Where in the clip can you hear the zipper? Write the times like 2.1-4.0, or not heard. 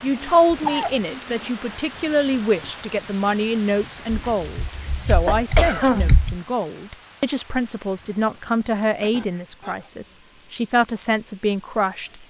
not heard.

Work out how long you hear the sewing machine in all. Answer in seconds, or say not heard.
not heard.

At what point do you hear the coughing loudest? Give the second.
6 s.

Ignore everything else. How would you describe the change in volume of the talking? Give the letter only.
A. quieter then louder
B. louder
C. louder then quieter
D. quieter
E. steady
E.